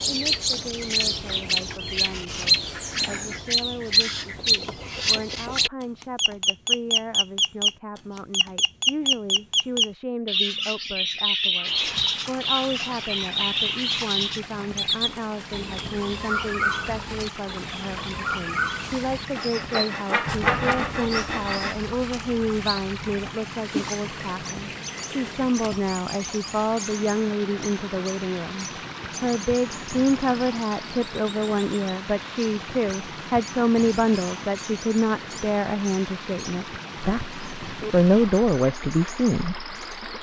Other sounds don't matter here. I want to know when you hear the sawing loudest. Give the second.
21 s.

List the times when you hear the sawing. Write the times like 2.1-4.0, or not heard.
19.4-21.8.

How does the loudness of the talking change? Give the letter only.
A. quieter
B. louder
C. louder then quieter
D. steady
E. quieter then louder
B.